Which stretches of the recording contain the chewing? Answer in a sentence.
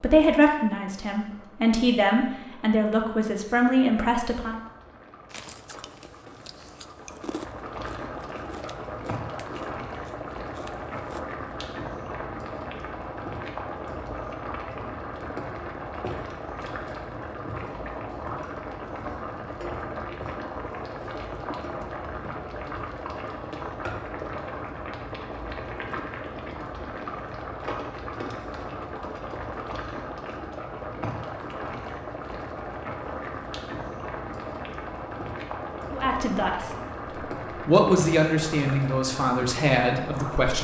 The chewing can be heard from 5.3 to 11.3 s.